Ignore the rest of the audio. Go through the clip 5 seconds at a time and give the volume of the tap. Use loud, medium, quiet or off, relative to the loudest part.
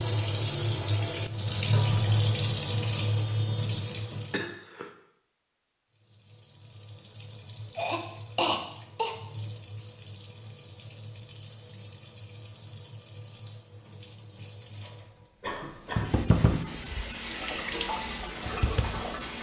loud, quiet, quiet, loud.